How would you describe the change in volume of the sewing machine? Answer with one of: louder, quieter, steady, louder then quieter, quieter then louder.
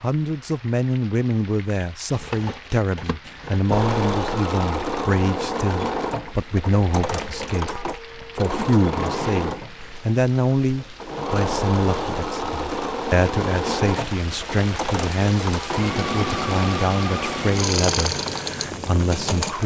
steady.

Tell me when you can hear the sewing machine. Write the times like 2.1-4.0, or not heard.
3.7-19.6.